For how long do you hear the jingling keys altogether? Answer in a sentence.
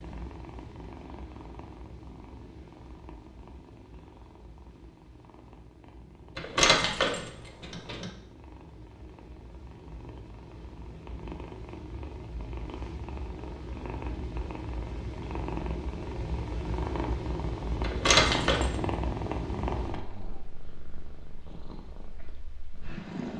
The jingling keys can be heard for 3 seconds in total.